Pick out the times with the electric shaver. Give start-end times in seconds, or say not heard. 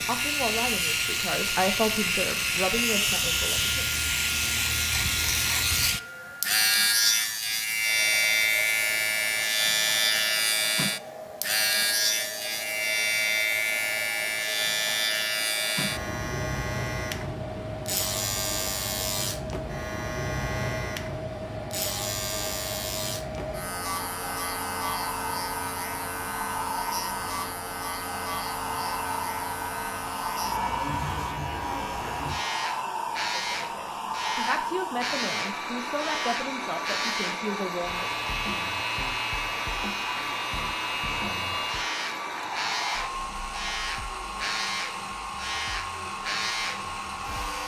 0.0-47.6.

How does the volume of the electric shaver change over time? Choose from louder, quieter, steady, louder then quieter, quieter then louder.
quieter.